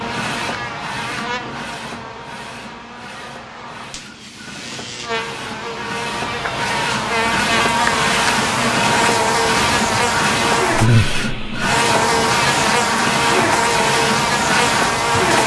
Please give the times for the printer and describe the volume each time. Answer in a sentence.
The printer can be heard from 0.0 to 15.4 s, getting louder.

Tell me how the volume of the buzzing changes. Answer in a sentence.
The volume of the buzzing goes up.